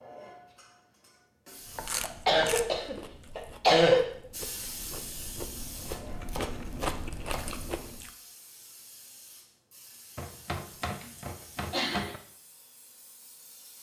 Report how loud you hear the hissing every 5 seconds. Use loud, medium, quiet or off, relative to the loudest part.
loud, loud, medium.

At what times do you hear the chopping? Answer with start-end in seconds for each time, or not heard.
1.6-2.6, 5.8-7.7, 10.2-12.2.